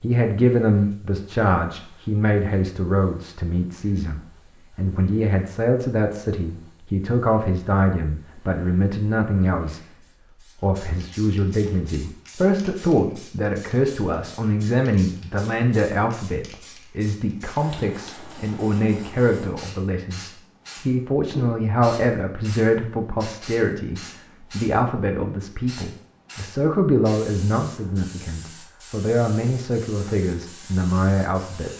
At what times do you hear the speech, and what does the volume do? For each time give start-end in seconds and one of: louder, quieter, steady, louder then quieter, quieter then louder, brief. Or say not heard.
0.0-9.8 steady
10.6-31.7 steady.